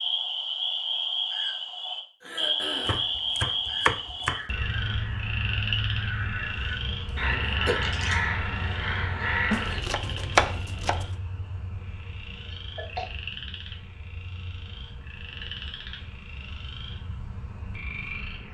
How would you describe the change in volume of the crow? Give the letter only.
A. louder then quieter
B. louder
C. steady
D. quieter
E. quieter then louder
B.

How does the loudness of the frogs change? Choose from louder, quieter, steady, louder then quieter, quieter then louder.
quieter.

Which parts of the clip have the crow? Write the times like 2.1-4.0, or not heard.
4.2-9.8.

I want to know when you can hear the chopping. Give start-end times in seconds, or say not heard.
2.9-4.4, 9.5-11.1.